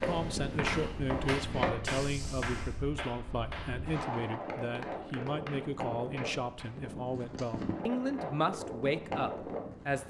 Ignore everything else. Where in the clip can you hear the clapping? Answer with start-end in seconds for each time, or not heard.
0.0-6.7.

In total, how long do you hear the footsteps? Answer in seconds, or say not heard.
3 s.